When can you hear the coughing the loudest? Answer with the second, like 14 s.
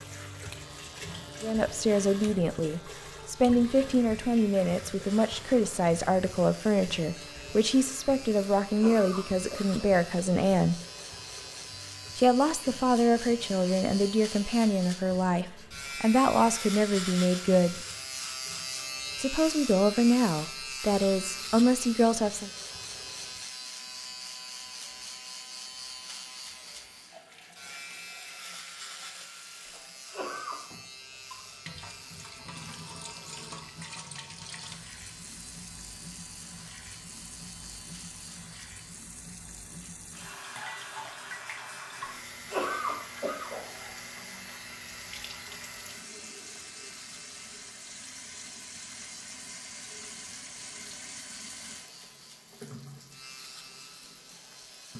43 s.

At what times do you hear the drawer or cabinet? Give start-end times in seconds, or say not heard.
not heard.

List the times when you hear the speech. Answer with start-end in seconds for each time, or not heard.
1.4-10.8, 12.2-17.9, 19.1-22.5.